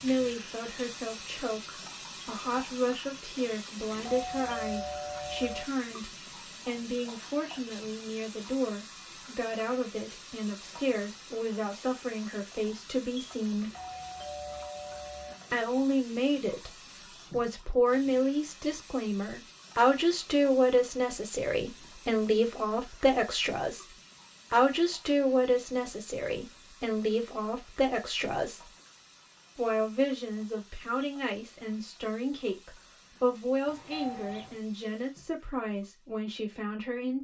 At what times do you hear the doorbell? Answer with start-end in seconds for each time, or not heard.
3.9-5.7, 13.6-15.3, 33.6-34.6.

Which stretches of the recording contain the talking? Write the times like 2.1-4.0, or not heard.
0.0-13.7, 15.5-28.7, 29.6-37.1.